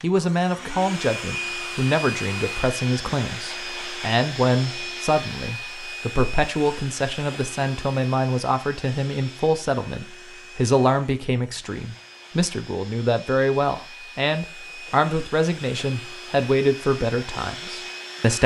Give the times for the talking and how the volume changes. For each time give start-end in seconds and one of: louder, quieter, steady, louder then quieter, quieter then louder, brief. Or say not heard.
0.0-18.4 steady.